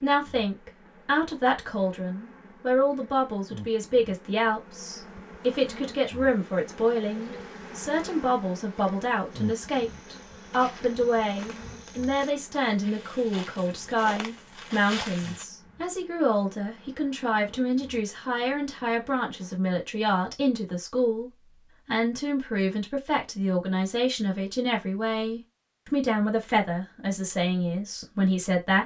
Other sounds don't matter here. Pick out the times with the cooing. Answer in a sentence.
You can't hear the cooing here.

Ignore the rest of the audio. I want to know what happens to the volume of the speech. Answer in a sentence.
The loudness of the speech stays about the same.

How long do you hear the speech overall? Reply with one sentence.
You can hear the speech for 29 seconds altogether.